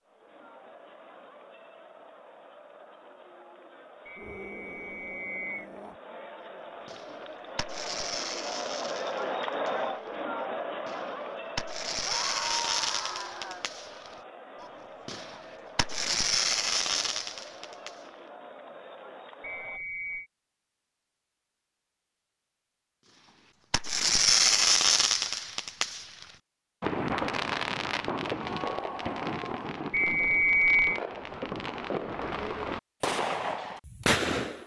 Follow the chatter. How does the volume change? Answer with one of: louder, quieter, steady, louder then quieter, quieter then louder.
louder then quieter.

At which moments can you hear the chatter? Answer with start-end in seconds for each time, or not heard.
0.0-19.8.